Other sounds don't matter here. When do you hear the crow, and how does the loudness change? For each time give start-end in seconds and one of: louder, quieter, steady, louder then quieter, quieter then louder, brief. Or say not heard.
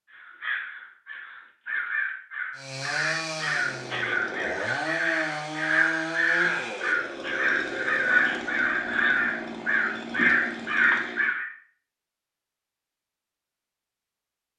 0.1-11.5 louder.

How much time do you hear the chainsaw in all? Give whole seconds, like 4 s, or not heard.
9 s.